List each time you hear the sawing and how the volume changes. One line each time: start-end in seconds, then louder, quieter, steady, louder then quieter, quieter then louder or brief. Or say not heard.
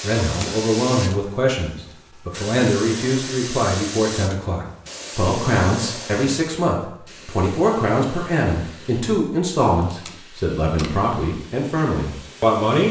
not heard.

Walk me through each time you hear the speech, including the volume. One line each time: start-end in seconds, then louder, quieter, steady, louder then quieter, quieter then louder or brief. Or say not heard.
0.0-12.8 steady.